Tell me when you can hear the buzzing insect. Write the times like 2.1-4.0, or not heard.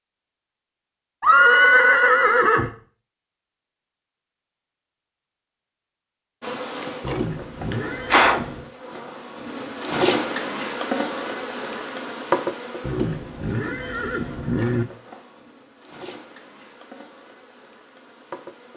6.4-18.7.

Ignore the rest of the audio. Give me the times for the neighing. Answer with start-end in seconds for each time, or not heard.
1.2-2.7, 7.0-8.7, 12.8-14.8.